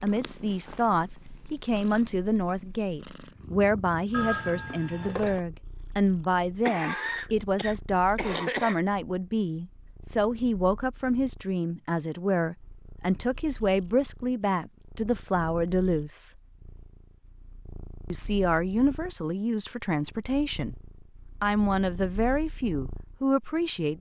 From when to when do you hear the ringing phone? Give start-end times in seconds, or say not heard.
4.1-5.4.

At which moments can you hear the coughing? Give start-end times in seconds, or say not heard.
6.2-8.8.